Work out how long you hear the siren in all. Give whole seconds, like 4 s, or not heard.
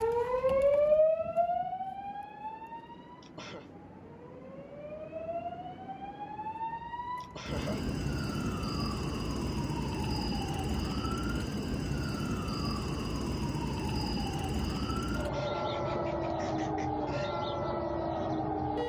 19 s.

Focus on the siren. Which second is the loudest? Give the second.
1 s.